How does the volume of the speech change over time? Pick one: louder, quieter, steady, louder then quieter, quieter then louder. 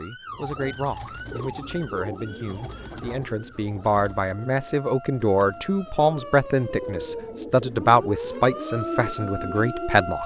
louder.